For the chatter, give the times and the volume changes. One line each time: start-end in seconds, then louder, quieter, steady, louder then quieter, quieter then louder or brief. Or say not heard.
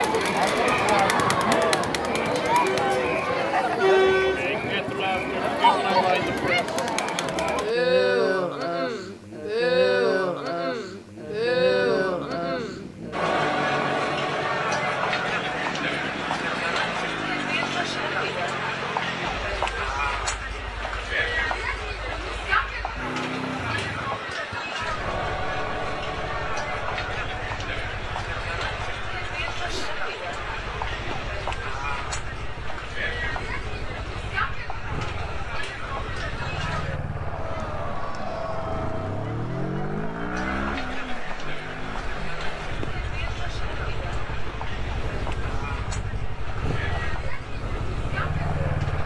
0.0-49.0 quieter.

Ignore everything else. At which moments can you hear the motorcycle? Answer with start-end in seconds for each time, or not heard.
11.2-49.0.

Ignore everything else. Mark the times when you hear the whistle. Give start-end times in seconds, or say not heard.
not heard.